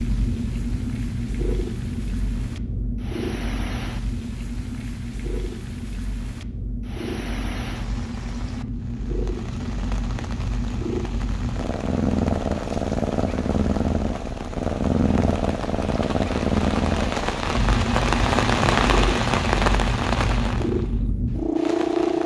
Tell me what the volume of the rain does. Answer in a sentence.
The volume of the rain goes up.